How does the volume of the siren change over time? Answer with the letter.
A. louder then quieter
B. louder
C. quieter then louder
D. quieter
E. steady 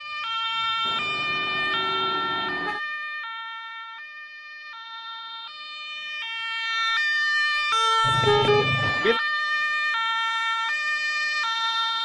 C.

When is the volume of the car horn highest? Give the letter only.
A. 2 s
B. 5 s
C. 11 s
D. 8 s
D.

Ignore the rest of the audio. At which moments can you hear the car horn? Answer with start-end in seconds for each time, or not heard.
0.8-2.8, 8.0-9.0.